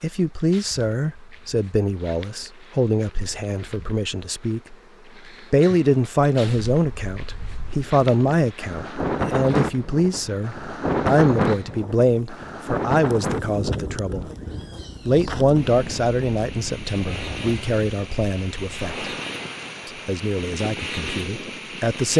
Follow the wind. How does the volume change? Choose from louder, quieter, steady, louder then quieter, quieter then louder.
quieter.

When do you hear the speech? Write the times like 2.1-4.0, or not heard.
0.0-4.8, 5.5-14.3, 15.1-19.1, 19.9-22.1.